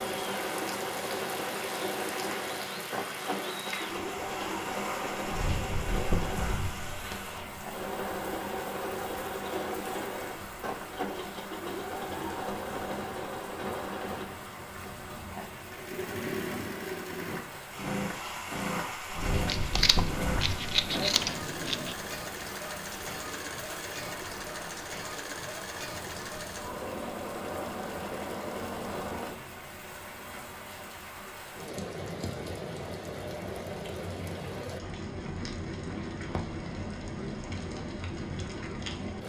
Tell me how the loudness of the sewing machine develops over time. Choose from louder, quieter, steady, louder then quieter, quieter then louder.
steady.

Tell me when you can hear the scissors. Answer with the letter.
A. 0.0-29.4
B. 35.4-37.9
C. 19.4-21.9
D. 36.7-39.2
C.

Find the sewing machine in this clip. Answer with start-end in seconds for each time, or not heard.
0.0-29.4.